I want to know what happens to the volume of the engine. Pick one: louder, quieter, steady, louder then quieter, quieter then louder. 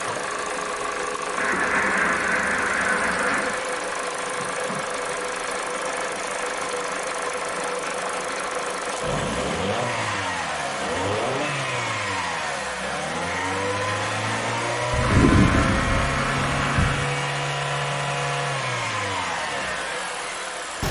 steady.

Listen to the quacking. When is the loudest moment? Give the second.
15 s.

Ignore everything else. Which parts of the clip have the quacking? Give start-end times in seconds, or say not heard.
1.4-3.6, 14.9-17.1.